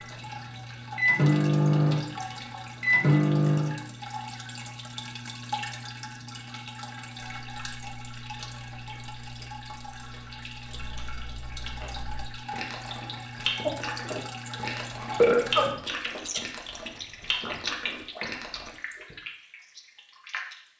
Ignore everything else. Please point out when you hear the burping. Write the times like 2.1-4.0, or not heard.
13.7-15.7.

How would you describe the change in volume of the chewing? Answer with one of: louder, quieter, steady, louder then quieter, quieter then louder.
louder.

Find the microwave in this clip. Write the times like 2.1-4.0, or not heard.
0.0-3.8.